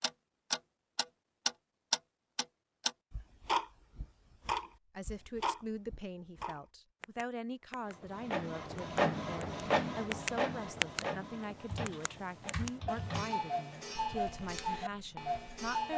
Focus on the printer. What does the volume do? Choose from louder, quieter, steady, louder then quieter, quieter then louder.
quieter.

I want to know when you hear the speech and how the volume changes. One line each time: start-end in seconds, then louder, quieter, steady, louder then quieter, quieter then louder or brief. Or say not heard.
5.0-15.9 steady.